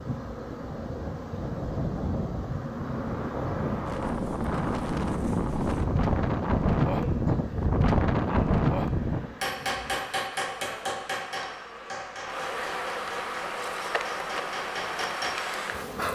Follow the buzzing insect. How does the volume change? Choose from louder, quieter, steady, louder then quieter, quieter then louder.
louder.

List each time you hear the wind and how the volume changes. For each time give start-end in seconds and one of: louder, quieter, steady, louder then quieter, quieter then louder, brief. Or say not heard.
0.0-9.3 louder.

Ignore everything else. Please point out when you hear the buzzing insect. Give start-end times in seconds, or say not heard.
0.0-16.1.